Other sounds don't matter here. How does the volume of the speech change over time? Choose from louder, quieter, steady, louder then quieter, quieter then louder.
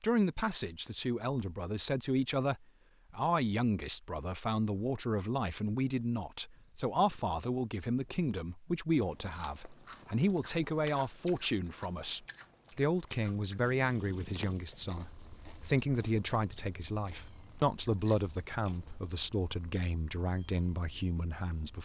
steady.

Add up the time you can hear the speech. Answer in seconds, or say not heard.
22 s.